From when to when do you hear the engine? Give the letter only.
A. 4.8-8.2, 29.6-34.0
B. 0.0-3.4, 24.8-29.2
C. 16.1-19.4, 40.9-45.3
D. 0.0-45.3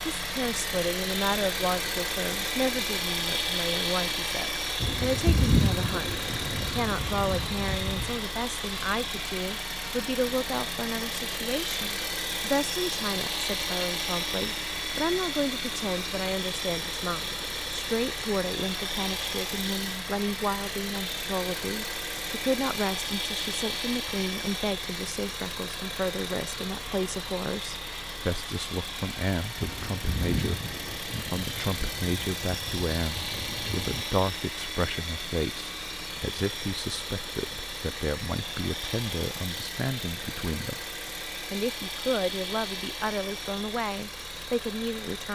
D.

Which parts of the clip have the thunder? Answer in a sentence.
You can hear the thunder from 4.8 to 8.2 s and from 29.6 to 34.0 s.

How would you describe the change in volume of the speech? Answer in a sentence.
The loudness of the speech stays about the same.